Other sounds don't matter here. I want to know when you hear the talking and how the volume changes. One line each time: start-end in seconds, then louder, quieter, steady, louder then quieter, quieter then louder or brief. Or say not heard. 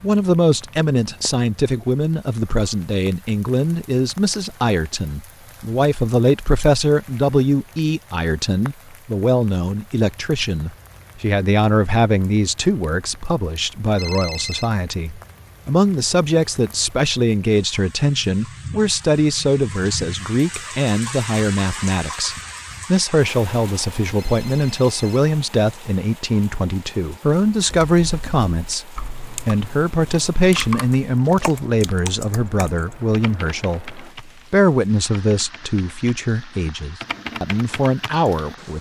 0.0-38.7 steady.